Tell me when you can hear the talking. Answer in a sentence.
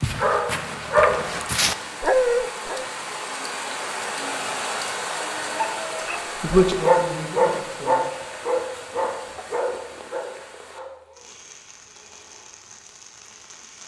The talking can be heard from 6.4 to 8.0 s.